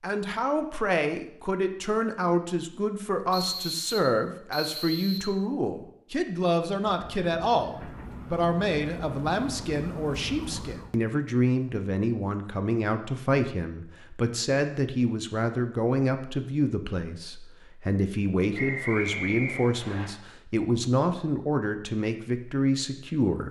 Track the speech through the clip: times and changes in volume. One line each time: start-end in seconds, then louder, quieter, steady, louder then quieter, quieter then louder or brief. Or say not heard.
0.0-23.4 steady.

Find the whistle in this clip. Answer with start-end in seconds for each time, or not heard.
3.3-5.3, 18.6-20.1.